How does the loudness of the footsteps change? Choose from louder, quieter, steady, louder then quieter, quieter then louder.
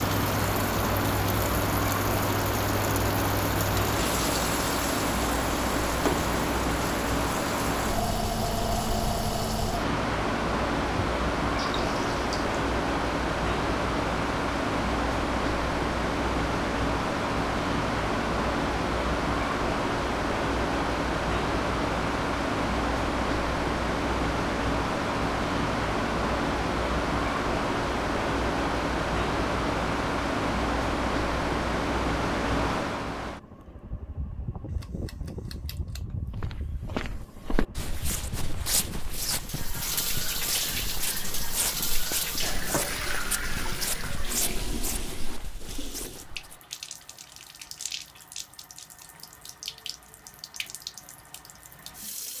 steady.